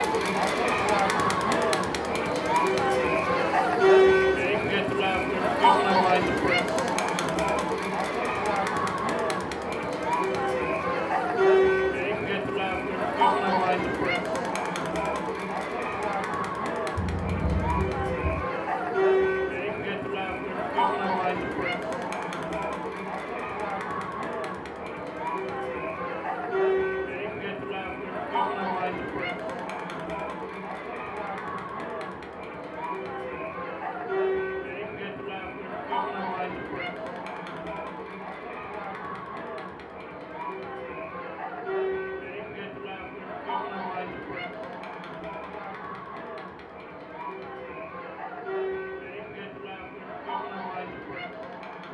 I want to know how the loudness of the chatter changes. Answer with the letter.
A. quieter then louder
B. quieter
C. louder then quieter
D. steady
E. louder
B.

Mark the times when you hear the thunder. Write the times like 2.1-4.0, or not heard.
16.9-18.5.